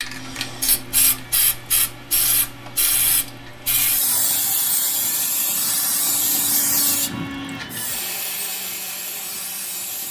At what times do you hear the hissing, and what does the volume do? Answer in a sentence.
The hissing can be heard from 0.0 to 10.0 s, getting quieter.